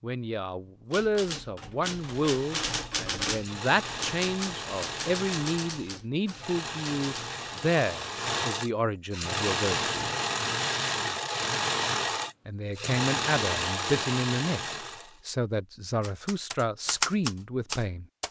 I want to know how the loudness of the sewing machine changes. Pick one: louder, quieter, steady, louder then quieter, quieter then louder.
louder.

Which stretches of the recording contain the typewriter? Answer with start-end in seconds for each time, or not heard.
0.9-7.4, 16.0-18.2.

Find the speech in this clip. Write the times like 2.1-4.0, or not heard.
0.0-10.1, 12.4-18.1.